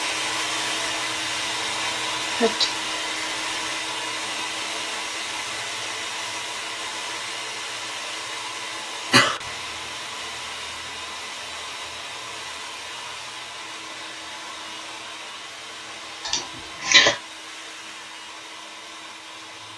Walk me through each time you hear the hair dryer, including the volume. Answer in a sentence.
You can hear the hair dryer from 0.0 to 19.7 s, getting quieter.